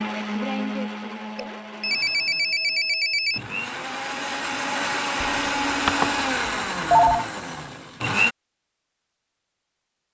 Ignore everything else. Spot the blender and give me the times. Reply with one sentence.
You can hear the blender from 0.0 to 8.3 s.